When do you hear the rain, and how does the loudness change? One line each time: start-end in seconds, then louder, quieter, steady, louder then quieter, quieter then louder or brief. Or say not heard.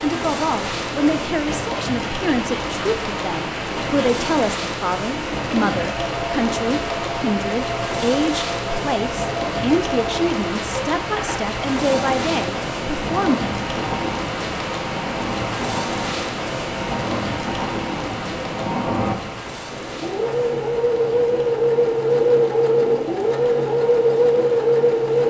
0.0-25.2 quieter.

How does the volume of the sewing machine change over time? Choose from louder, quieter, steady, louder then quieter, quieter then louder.
louder.